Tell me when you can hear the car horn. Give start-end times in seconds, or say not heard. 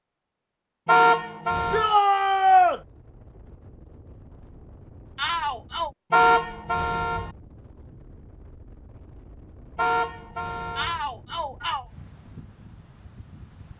0.8-1.9, 6.1-7.3, 9.8-11.0.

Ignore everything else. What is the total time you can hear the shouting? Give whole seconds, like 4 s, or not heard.
3 s.